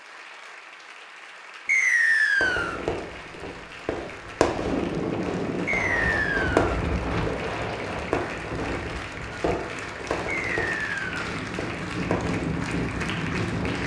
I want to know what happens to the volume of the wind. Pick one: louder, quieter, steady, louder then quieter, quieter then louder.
quieter then louder.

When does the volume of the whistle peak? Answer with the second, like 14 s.
2 s.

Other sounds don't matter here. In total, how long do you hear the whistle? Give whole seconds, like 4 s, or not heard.
3 s.